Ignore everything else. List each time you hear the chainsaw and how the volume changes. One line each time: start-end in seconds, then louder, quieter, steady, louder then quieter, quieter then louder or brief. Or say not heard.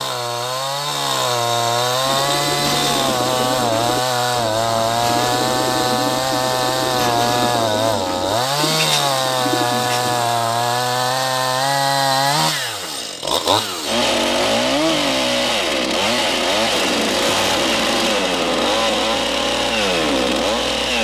0.0-21.0 steady.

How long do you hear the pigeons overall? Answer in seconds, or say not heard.
8 s.